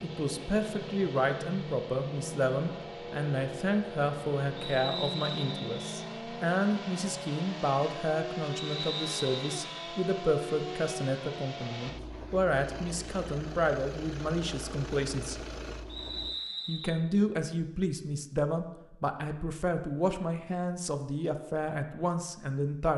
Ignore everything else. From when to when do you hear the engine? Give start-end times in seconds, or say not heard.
0.0-16.4.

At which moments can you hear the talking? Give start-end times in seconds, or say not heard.
0.0-15.4, 16.6-22.9.